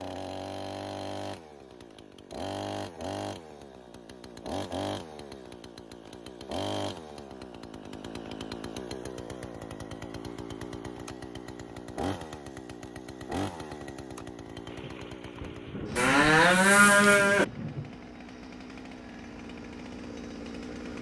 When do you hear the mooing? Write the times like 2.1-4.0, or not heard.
15.9-17.4.